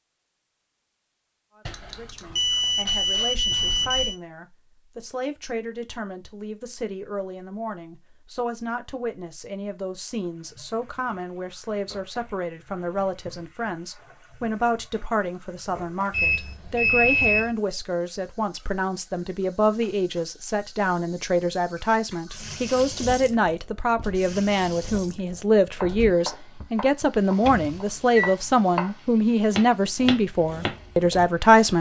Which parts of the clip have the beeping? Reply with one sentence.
The beeping can be heard from 1.6 to 4.2 s, from 16.1 to 17.6 s and from 27.4 to 28.4 s.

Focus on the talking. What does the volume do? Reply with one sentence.
The loudness of the talking goes up.